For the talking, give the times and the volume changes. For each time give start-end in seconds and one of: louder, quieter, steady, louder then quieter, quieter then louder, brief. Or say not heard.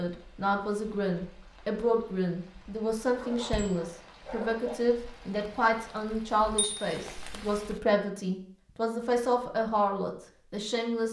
0.0-11.0 steady.